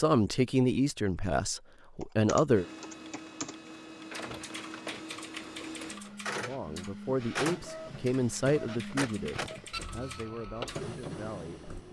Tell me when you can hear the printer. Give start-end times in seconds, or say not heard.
2.5-11.8.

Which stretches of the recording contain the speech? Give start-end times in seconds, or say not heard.
0.0-2.6, 6.5-11.8.